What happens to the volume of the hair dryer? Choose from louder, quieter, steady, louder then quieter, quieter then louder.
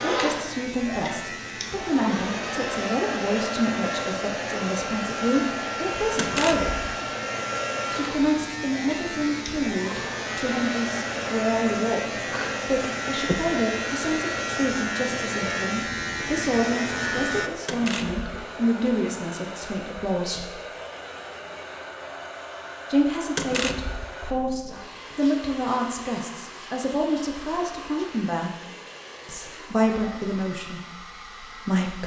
quieter.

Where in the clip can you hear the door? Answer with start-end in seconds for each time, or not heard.
6.2-6.7, 17.6-18.4, 23.4-24.1.